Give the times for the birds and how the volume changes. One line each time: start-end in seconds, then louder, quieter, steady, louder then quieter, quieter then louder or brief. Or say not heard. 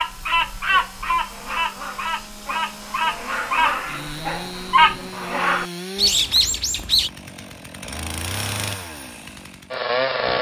0.0-7.1 quieter then louder.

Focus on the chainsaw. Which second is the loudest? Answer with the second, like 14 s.
10 s.